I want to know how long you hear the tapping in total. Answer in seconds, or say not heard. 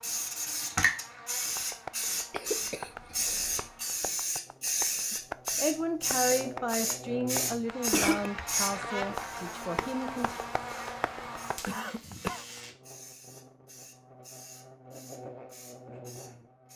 11 s.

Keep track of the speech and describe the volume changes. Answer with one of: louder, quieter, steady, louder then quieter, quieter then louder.
quieter.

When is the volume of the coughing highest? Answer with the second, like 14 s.
8 s.